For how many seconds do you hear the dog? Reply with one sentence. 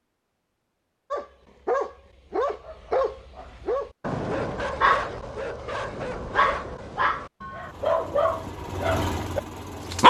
You can hear the dog for 9 seconds altogether.